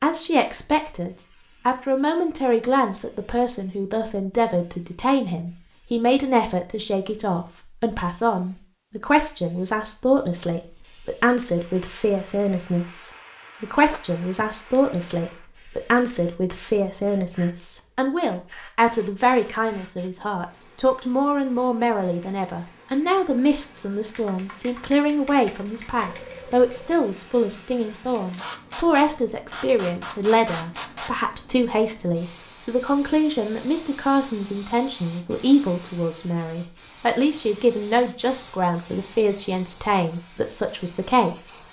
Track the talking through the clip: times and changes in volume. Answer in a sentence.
You can hear the talking from 0.0 to 41.6 s, at a steady volume.